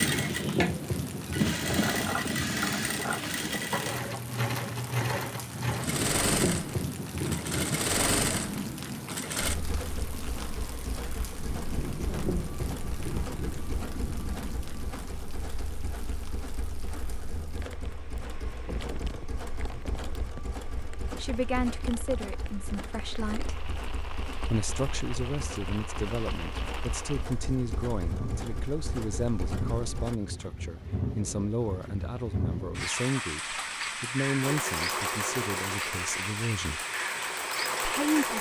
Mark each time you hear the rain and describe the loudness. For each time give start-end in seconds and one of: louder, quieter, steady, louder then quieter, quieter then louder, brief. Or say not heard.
0.0-38.3 quieter then louder.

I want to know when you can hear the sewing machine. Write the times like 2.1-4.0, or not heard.
0.0-30.2, 34.4-38.3.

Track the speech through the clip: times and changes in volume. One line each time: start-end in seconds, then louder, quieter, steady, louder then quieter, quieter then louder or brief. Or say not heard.
21.1-23.7 brief
24.5-36.9 steady
37.8-38.3 brief.